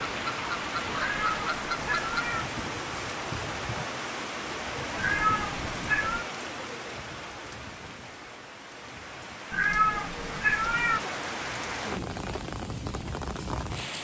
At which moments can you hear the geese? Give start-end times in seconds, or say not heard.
0.0-2.3.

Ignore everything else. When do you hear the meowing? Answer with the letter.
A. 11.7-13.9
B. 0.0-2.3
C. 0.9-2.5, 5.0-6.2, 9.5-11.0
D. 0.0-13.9
C.